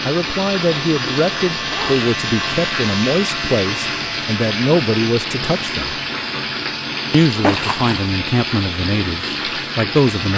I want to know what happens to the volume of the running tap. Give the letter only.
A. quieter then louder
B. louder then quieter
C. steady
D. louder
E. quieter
C.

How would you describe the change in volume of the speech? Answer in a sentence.
The loudness of the speech stays about the same.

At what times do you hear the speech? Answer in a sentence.
You can hear the speech from 0.0 to 6.0 s and from 7.1 to 10.3 s.